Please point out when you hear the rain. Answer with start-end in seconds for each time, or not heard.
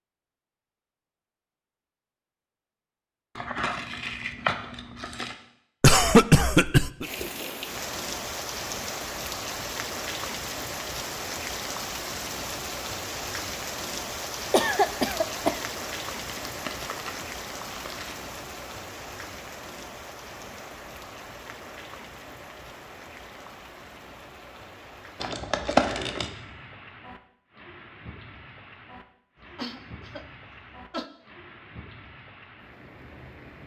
7.0-33.6.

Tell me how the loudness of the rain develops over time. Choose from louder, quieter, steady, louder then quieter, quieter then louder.
quieter.